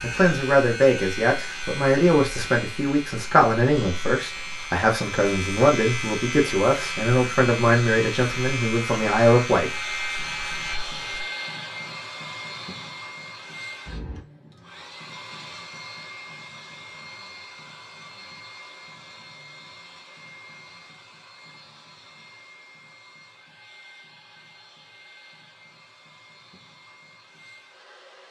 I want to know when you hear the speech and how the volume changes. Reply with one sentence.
The speech can be heard from 0.0 to 9.7 s, at a steady volume.